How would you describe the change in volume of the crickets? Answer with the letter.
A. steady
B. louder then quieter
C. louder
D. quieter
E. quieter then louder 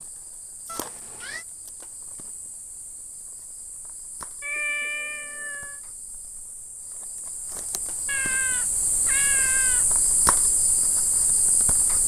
C.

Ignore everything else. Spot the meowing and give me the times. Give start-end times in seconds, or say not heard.
0.7-1.4, 4.4-5.8, 8.1-9.8.